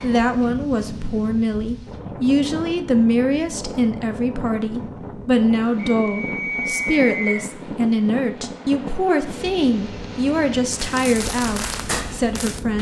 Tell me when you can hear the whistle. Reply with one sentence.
The whistle can be heard from 5.9 to 7.5 s.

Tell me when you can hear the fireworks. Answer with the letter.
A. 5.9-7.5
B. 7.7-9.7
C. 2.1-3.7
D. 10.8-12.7
D.